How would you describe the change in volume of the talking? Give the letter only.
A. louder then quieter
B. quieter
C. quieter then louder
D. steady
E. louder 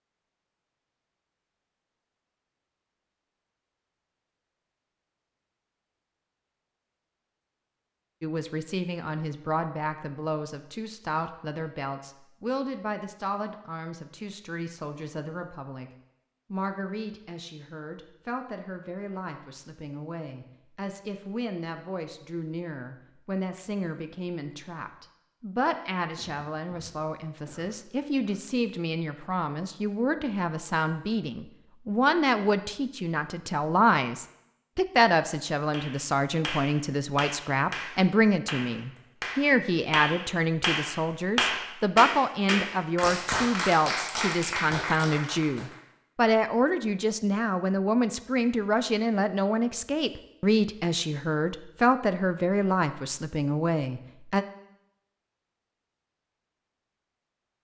E.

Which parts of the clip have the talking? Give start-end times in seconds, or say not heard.
8.2-15.9, 16.5-54.5.